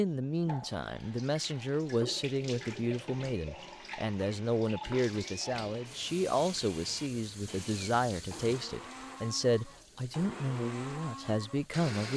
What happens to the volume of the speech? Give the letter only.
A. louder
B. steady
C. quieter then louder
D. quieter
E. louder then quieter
B.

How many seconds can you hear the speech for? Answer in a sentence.
You can hear the speech for 12 seconds altogether.